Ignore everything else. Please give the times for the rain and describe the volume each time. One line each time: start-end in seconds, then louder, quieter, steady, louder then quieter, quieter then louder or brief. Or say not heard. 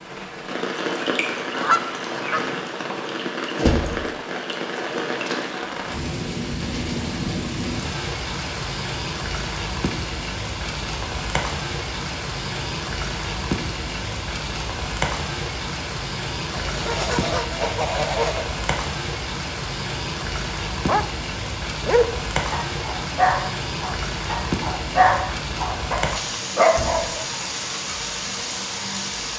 0.0-29.3 steady.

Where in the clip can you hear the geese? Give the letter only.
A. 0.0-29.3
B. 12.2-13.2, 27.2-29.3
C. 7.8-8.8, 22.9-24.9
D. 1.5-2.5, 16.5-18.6
D.